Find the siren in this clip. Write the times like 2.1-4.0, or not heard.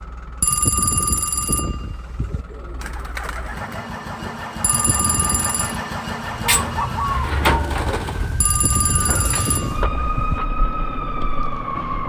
6.5-12.0.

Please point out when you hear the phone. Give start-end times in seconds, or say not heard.
0.4-2.5, 4.6-5.8, 8.4-10.4.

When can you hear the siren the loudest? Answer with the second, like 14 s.
10 s.